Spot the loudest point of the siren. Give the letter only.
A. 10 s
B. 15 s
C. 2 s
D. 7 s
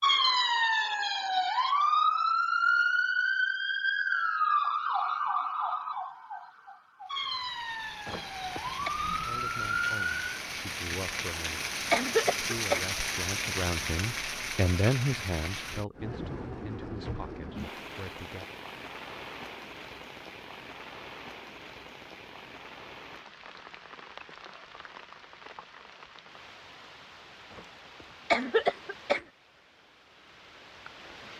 C.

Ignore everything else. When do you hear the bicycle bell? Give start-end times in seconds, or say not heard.
not heard.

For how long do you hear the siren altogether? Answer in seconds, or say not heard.
10 s.